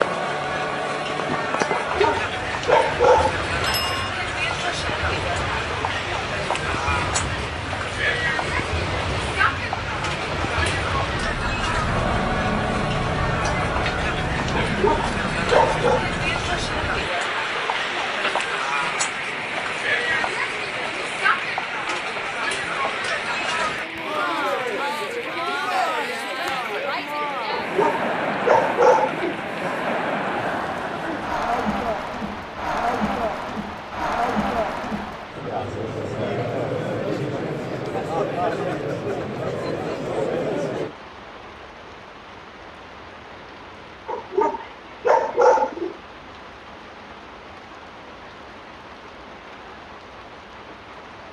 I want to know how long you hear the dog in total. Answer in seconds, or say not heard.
7 s.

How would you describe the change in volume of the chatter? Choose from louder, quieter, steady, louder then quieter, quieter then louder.
steady.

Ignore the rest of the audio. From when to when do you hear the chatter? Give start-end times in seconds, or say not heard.
0.0-41.0.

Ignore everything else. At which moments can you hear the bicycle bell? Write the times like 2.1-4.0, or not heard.
3.6-4.1.